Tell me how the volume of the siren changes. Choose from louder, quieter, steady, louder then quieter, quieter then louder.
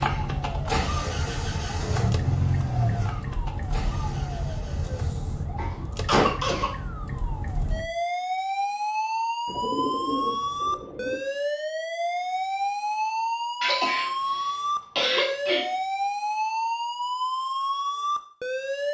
louder.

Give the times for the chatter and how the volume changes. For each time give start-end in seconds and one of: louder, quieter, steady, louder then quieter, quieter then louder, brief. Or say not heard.
not heard.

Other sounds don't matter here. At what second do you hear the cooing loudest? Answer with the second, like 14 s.
10 s.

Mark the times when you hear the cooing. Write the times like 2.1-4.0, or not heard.
9.4-11.2.